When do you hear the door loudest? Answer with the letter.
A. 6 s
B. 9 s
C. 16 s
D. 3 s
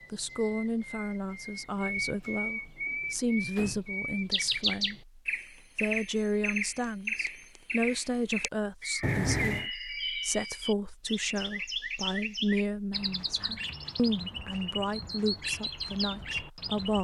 B.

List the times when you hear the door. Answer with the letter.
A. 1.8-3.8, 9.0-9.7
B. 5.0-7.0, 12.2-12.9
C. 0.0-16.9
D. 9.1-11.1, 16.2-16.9
A.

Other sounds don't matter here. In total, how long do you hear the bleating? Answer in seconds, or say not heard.
not heard.